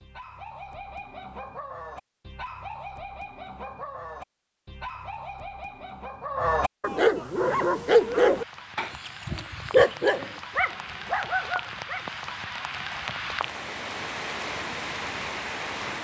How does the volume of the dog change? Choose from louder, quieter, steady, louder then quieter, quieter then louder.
louder.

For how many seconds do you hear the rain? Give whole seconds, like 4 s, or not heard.
9 s.